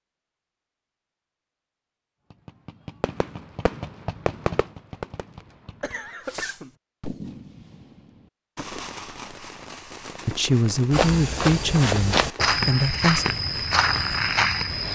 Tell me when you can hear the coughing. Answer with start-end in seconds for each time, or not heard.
5.8-6.8.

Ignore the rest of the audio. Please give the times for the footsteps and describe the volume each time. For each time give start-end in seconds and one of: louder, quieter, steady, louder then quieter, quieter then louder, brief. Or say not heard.
10.9-14.9 steady.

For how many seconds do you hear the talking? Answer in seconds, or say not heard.
3 s.